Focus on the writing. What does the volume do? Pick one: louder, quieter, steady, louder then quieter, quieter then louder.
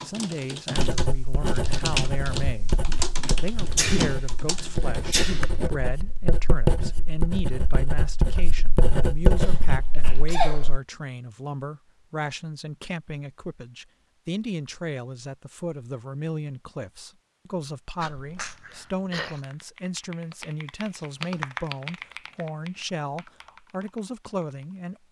quieter then louder.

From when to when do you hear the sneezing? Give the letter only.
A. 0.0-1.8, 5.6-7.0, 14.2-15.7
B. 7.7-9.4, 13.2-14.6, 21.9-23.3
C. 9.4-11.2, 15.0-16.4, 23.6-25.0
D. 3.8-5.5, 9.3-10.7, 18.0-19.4
D.